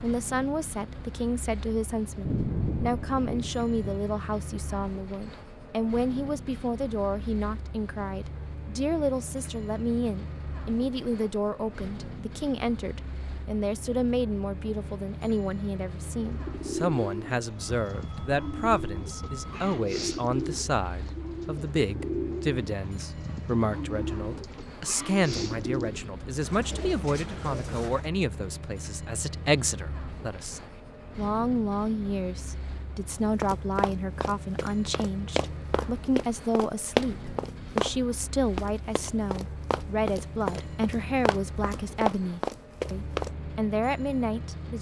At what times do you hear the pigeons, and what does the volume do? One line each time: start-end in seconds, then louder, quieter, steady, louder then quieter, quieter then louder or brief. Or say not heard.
16.1-28.1 steady.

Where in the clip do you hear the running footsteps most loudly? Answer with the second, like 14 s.
37 s.